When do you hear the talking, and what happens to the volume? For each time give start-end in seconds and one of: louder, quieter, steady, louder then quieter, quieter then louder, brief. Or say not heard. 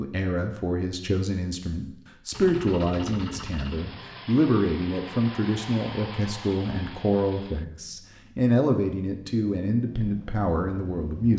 0.0-11.3 steady.